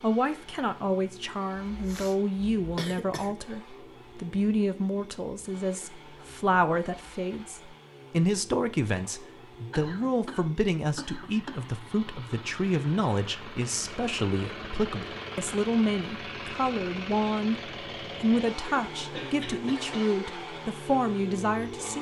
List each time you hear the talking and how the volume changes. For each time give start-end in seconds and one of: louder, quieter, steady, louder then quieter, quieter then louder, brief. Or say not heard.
0.0-21.9 steady.